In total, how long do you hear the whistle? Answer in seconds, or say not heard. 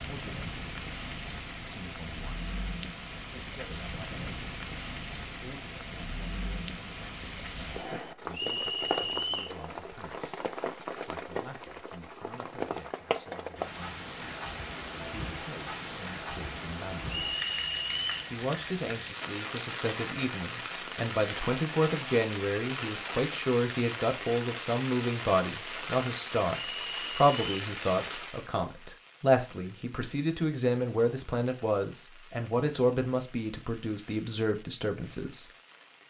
3 s.